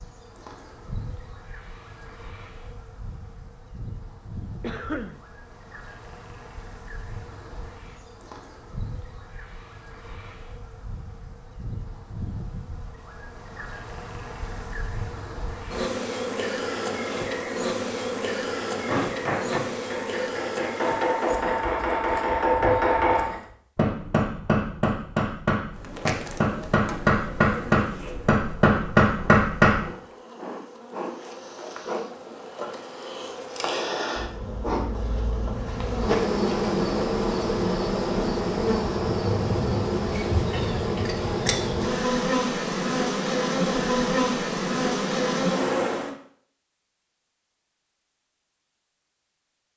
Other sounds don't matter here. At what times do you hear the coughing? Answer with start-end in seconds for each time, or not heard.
4.6-5.2, 40.5-41.2.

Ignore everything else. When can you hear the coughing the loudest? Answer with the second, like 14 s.
5 s.